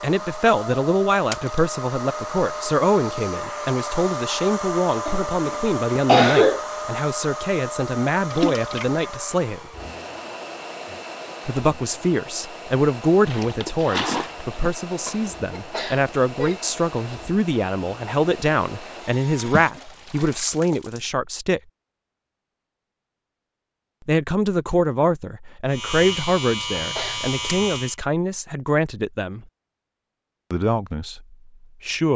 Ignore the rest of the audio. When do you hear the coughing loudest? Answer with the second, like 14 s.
6 s.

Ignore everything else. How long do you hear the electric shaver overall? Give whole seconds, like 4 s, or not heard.
2 s.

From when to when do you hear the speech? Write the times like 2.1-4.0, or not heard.
0.0-9.7, 11.4-21.6, 24.1-29.4, 30.5-32.1.